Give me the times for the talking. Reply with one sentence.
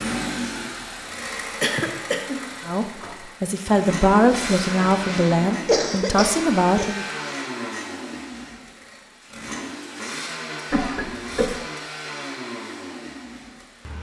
The talking can be heard from 2.6 to 7.0 s.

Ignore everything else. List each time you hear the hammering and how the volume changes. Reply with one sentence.
The hammering can't be heard in this clip.